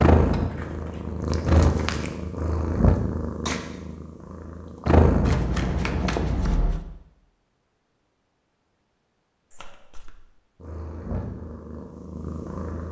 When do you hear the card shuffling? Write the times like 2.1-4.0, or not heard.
0.1-2.0, 5.2-6.8, 9.5-10.2.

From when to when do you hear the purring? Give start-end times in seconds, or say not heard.
0.0-6.1, 10.6-12.8.